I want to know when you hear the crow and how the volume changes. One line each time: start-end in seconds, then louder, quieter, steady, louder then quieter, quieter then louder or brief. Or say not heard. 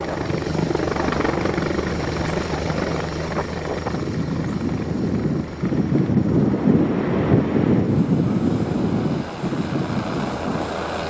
not heard.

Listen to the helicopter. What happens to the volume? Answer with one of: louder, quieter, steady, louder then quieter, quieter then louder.
quieter then louder.